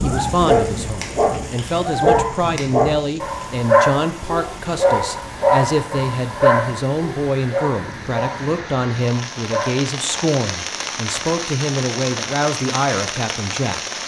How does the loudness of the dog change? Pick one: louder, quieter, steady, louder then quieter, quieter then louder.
quieter.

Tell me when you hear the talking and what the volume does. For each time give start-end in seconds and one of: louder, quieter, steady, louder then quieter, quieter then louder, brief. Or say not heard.
0.0-13.8 steady.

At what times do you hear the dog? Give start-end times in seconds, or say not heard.
0.5-9.8.